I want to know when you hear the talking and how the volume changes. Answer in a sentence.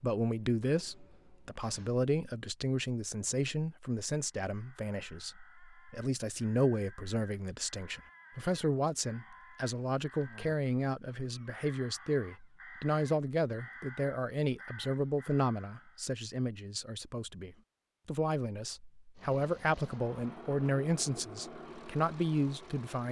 The talking can be heard from 0.0 to 23.0 s, at a steady volume.